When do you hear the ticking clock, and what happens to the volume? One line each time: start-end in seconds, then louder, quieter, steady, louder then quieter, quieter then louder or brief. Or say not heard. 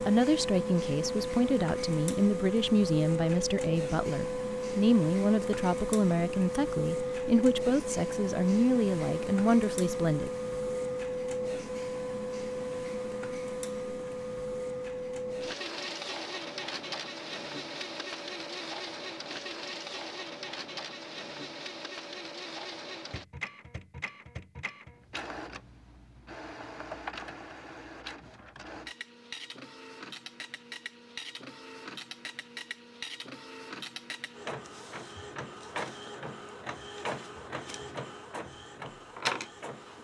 not heard.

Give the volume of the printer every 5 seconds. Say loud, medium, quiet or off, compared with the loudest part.
loud, loud, loud, medium, medium, medium, medium, medium.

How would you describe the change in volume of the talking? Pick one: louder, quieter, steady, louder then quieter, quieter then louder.
steady.